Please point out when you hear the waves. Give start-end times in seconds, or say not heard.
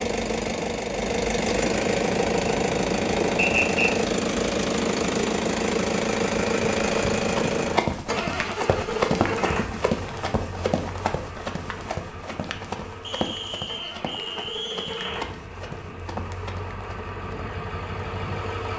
not heard.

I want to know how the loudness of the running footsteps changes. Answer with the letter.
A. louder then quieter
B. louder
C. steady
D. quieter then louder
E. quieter
E.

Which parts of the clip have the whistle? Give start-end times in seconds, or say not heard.
3.4-4.0, 13.0-15.3.